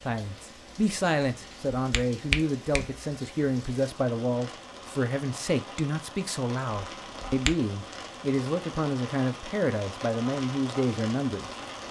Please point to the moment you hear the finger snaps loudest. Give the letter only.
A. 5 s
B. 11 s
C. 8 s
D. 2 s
D.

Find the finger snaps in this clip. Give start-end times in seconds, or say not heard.
1.8-2.9, 6.8-7.5.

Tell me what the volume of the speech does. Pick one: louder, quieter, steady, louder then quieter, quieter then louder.
steady.